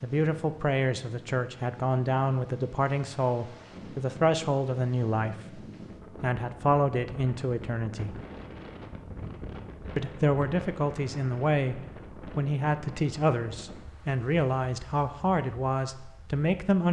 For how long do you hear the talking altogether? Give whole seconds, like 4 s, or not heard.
15 s.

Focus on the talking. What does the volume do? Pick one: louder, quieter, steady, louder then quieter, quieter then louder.
steady.